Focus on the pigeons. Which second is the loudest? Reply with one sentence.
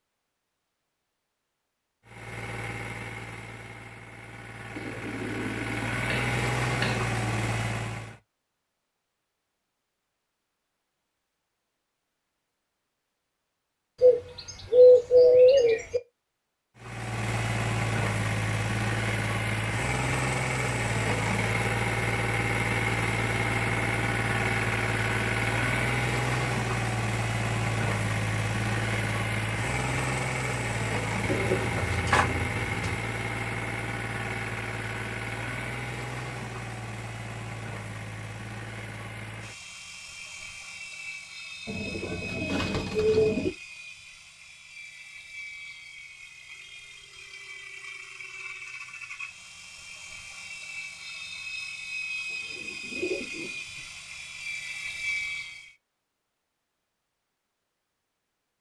The loudest moment of the pigeons is at 15 seconds.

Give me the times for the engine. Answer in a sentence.
You can hear the engine from 2.0 to 8.2 s and from 16.8 to 55.8 s.